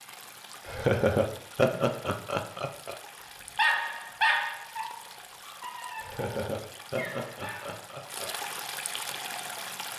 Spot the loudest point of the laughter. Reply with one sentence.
The loudest moment of the laughter is at 1 second.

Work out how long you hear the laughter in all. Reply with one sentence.
You can hear the laughter for 5 seconds altogether.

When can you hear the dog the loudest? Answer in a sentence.
The volume of the dog peaks at 4 seconds.